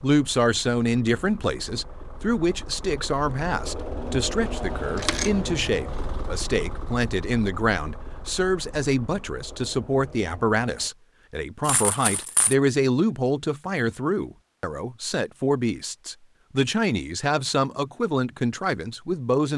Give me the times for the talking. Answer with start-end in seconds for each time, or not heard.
0.0-19.5.